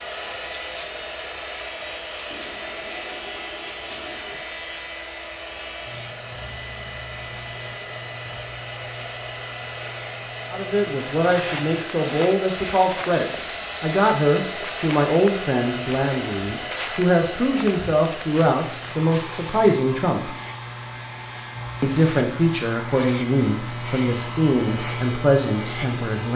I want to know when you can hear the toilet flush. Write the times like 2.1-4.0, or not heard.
2.3-4.5.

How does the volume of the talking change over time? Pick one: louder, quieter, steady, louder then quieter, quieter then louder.
steady.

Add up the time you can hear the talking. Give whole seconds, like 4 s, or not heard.
14 s.